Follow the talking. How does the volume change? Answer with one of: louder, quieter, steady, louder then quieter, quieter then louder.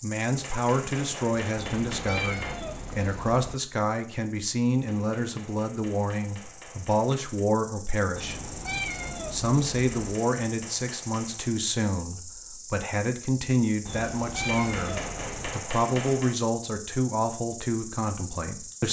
steady.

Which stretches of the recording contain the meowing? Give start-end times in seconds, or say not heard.
1.6-3.6, 8.2-10.2, 13.8-15.6.